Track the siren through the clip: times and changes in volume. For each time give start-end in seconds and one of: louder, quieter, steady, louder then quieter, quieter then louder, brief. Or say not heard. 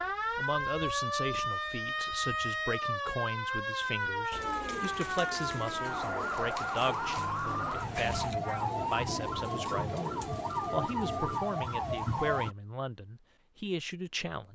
0.0-12.6 steady.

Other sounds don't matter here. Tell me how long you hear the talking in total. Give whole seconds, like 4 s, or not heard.
14 s.